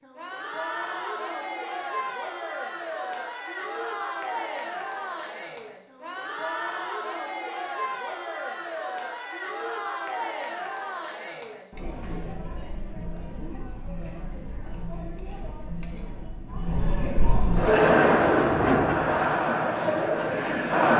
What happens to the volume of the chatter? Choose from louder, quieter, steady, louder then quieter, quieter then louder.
quieter then louder.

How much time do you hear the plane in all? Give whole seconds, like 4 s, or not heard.
2 s.